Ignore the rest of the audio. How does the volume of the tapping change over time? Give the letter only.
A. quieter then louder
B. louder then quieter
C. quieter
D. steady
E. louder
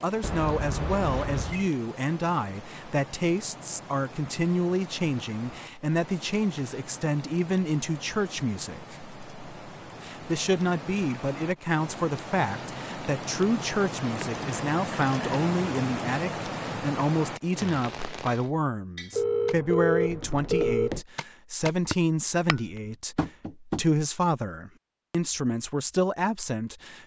E.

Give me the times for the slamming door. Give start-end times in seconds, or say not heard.
not heard.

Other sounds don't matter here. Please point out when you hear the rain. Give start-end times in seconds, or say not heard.
0.0-18.5.